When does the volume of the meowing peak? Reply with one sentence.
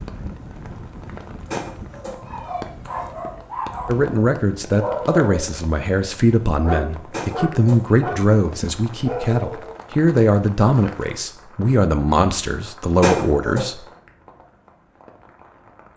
The volume of the meowing peaks at 13 seconds.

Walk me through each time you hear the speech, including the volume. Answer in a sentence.
The speech can be heard from 3.9 to 13.8 s, at a steady volume.